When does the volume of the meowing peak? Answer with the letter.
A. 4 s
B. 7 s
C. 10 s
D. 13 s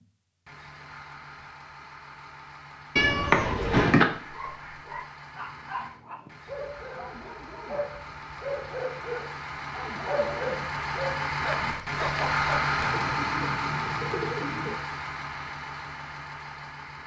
A.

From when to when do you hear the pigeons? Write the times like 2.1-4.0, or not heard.
12.8-14.8.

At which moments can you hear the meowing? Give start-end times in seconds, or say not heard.
3.0-4.0, 11.5-12.8.